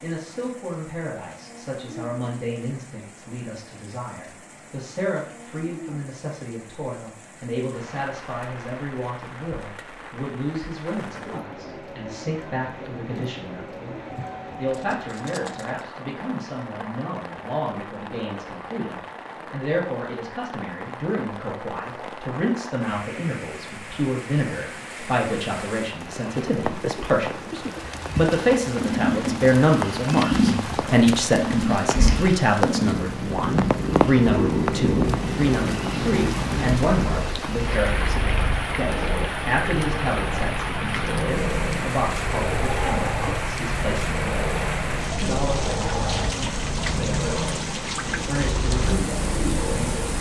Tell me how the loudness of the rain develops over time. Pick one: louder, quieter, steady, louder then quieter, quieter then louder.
louder.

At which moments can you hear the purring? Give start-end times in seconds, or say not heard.
28.8-50.1.